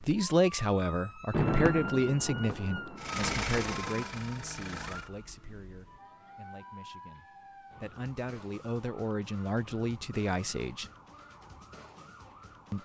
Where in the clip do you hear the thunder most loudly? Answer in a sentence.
The loudest moment of the thunder is at 2 seconds.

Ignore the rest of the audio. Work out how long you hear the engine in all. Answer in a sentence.
You can hear the engine for 2 seconds altogether.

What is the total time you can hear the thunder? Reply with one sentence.
The thunder can be heard for 3 seconds in total.